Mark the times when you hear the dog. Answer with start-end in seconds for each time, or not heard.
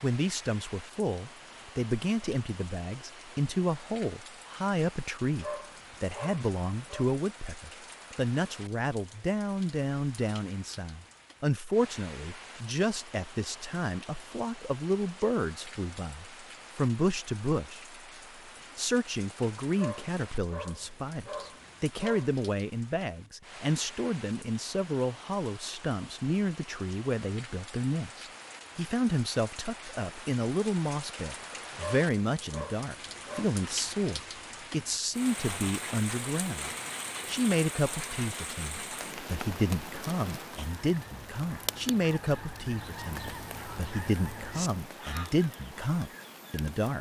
5.4-7.1, 19.8-22.4, 31.8-33.5.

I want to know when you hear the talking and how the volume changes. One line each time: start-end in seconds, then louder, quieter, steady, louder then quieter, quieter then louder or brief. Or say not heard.
0.0-17.9 steady
18.8-46.9 steady.